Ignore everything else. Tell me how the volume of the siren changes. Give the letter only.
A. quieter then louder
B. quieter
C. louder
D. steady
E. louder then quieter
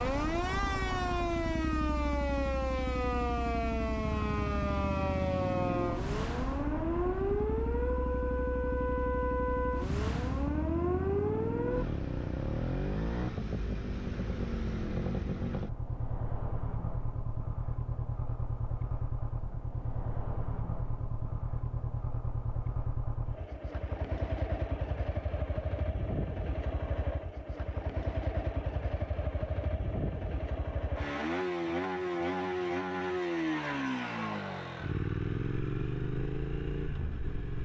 D.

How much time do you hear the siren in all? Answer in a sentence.
You can hear the siren for 12 seconds altogether.